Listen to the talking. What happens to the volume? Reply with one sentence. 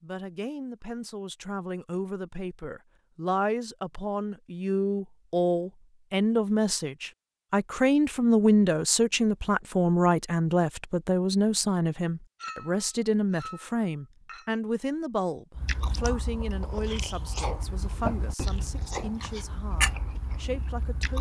The loudness of the talking goes up, then down.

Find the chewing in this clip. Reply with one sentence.
You can hear the chewing from 15.6 to 21.1 s.